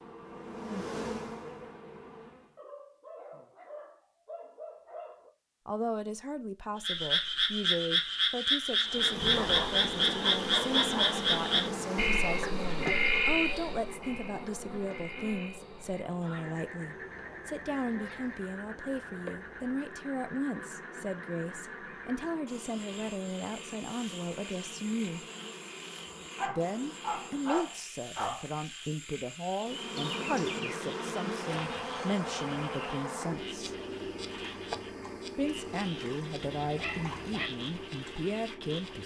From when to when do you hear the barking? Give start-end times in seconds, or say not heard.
2.5-5.3, 9.3-11.2, 16.2-18.5, 26.4-28.4, 36.6-37.5.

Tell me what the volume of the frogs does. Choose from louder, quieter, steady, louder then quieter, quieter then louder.
quieter.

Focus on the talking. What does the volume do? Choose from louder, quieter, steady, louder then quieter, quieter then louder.
steady.